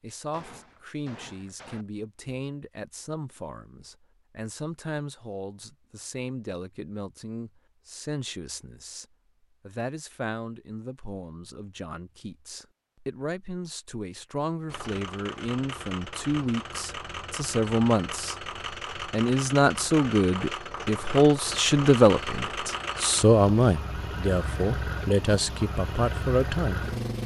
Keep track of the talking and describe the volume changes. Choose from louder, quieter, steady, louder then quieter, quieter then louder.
louder.